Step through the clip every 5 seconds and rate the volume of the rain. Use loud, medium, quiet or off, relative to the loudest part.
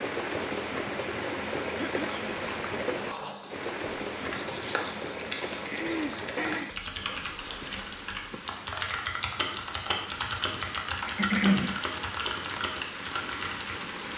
loud, medium, medium.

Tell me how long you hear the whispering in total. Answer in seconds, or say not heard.
6 s.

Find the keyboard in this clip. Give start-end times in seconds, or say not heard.
4.2-13.8.